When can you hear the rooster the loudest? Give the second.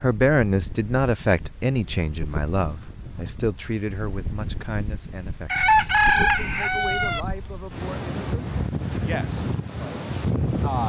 6 s.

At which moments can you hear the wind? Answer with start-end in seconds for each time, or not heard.
0.0-10.8.